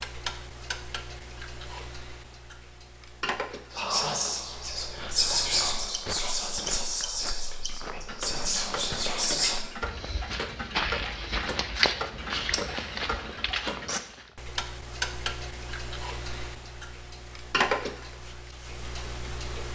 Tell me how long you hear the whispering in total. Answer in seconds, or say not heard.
6 s.